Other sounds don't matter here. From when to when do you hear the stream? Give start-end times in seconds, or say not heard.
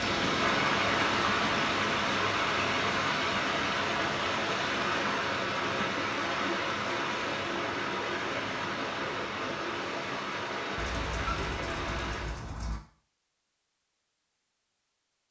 0.0-12.4.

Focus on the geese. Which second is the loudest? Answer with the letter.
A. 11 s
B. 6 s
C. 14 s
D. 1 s
A.